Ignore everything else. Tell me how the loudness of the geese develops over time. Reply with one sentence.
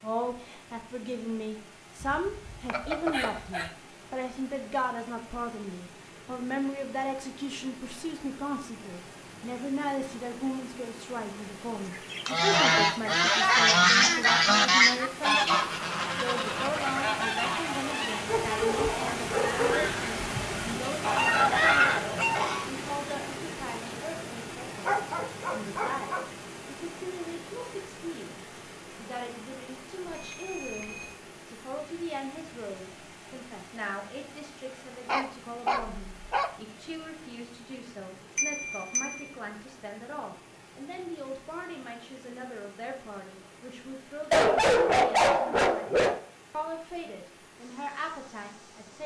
The volume of the geese goes down, then up.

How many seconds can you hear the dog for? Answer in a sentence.
The dog can be heard for 9 seconds in total.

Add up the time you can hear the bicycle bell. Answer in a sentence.
You can hear the bicycle bell for 3 seconds altogether.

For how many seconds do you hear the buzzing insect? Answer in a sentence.
You can't hear the buzzing insect here.